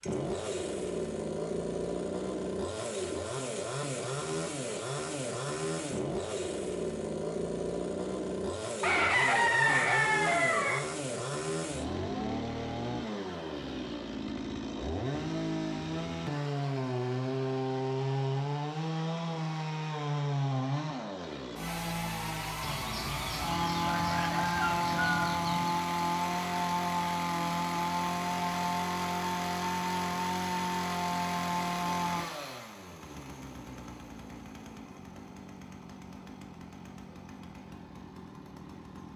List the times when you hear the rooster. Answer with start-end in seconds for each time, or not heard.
8.8-10.8, 22.6-25.8.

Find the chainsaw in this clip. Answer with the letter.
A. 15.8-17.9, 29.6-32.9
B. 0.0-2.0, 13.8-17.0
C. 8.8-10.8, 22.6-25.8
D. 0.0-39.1
D.